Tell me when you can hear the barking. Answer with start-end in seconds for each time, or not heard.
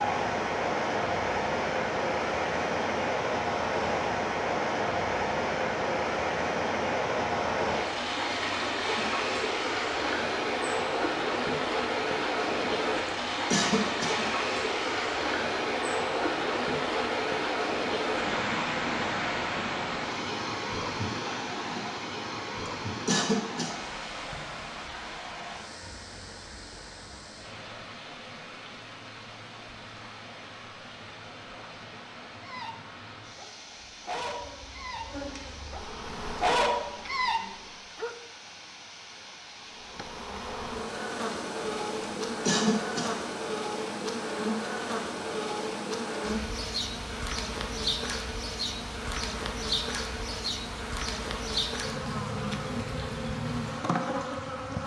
32.4-38.1.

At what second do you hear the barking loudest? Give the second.
37 s.